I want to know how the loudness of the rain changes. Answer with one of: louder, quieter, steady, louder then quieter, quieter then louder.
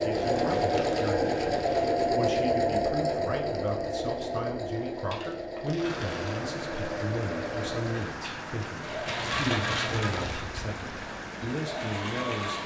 steady.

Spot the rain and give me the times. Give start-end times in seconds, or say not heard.
5.8-12.6.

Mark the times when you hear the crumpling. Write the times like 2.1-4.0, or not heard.
0.1-2.1, 4.9-6.4, 9.1-10.4.